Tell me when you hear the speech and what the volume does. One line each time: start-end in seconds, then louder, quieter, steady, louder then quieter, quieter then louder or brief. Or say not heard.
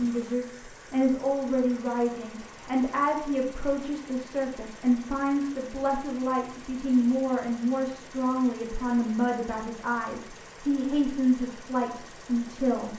0.0-12.9 steady.